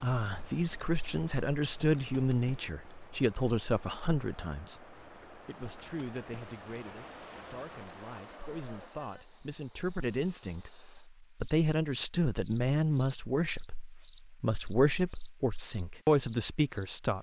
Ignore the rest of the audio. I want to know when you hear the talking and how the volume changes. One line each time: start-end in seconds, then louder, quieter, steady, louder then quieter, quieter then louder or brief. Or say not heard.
0.0-17.1 quieter then louder.